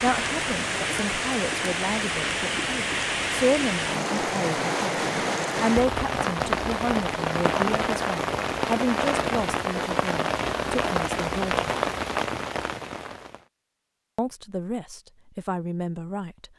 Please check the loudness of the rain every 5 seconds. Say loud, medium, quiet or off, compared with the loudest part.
loud, loud, loud, off.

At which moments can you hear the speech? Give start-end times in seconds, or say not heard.
0.0-4.9, 5.6-11.7, 14.2-16.4.